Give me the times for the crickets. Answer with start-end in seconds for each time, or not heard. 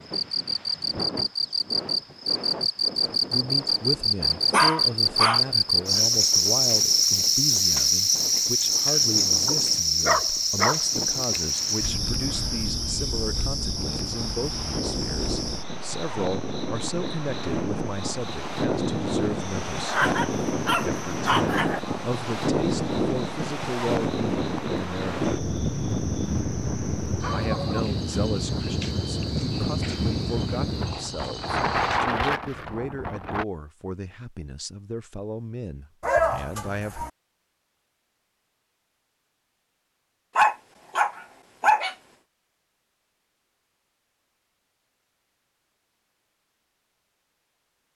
0.0-32.0.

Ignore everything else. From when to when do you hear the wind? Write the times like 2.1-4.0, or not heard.
0.0-33.5.